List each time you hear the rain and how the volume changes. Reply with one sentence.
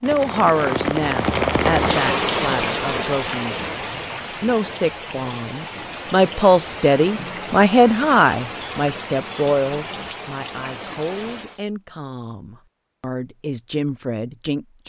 The rain can be heard from 0.0 to 11.6 s, getting quieter.